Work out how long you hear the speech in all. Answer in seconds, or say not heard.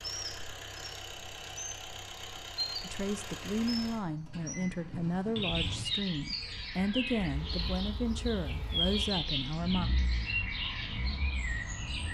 7 s.